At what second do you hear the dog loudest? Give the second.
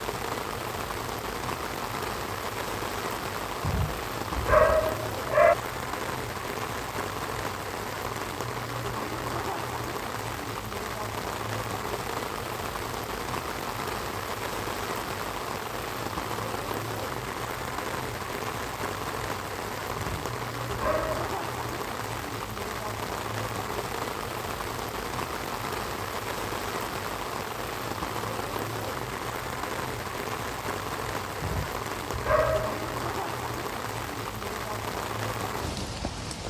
5 s.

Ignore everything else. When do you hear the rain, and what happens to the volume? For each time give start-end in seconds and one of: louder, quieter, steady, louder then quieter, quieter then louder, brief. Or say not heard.
0.0-36.4 steady.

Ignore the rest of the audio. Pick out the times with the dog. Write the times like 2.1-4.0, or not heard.
3.6-5.5, 19.9-21.2, 31.4-32.8.